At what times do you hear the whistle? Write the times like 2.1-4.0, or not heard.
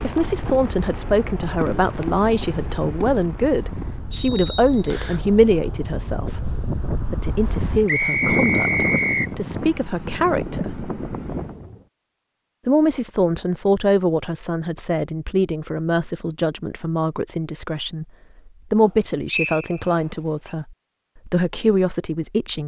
4.1-5.2, 7.8-9.3, 19.2-20.5.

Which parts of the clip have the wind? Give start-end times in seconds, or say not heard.
0.0-11.8.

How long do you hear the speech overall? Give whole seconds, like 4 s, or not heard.
21 s.